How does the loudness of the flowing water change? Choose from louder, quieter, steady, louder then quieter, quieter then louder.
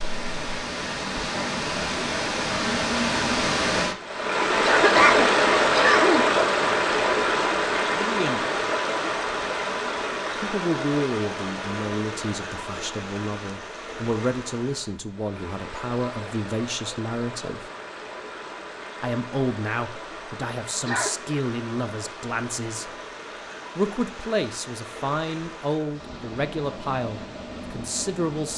quieter.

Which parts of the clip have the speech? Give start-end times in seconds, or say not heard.
7.9-8.4, 10.3-17.7, 19.0-22.9, 23.8-28.5.